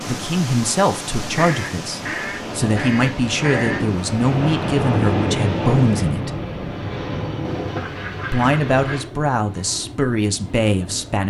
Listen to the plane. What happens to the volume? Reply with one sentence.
The volume of the plane goes up, then down.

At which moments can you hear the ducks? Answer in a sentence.
You can hear the ducks from 1.4 to 3.8 s and from 7.5 to 9.1 s.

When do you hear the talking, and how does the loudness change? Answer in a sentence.
The talking can be heard from 0.0 to 6.3 s, getting quieter then louder; and briefly from 8.3 to 11.2 s.